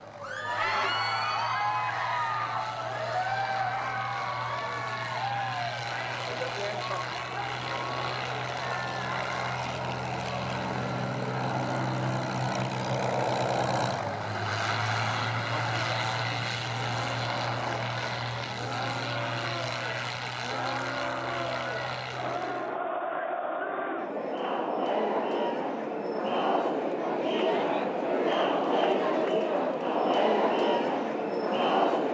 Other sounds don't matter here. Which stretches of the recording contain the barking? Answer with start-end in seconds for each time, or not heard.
not heard.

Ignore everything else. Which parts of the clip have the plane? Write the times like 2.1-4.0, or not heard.
0.0-22.8.